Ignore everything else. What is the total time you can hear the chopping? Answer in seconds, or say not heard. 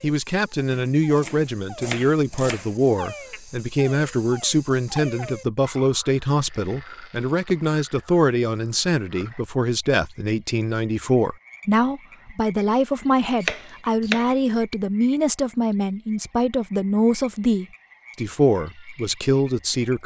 3 s.